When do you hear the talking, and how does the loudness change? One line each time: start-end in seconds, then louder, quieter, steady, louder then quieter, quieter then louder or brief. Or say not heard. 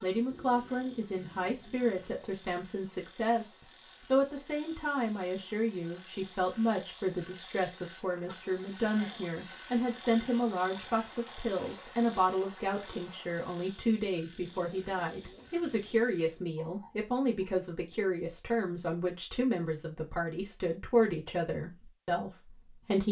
0.0-23.0 steady.